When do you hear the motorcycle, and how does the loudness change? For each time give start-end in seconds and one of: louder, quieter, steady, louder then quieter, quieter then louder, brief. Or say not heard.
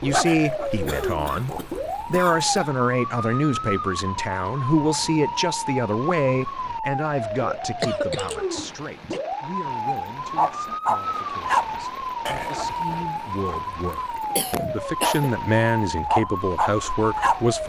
not heard.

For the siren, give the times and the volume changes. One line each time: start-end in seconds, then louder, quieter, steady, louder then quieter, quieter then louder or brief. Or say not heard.
0.0-17.6 steady.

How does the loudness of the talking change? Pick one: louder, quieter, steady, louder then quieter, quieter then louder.
quieter then louder.